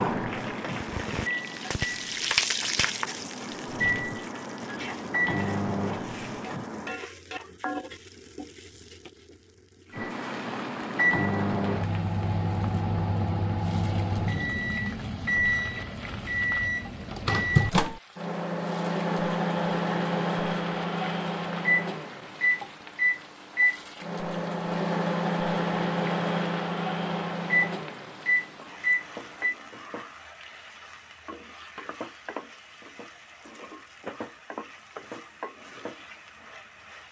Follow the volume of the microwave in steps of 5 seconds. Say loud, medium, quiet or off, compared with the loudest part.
medium, loud, loud, loud, loud, loud, off, off.